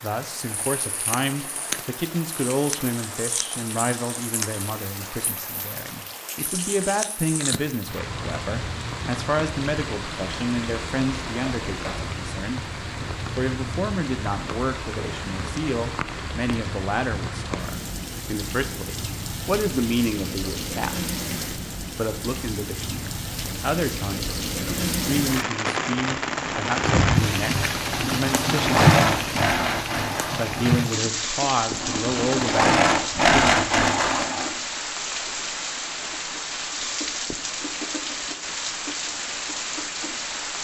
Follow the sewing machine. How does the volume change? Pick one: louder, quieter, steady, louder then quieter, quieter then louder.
quieter then louder.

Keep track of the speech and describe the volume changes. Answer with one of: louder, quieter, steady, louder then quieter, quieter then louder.
steady.